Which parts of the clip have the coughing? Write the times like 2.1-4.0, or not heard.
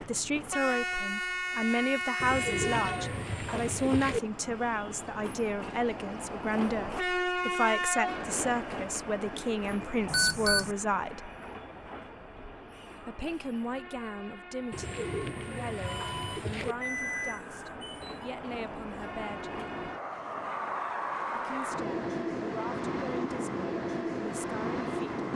not heard.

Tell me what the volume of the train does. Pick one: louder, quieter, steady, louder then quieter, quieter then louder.
quieter then louder.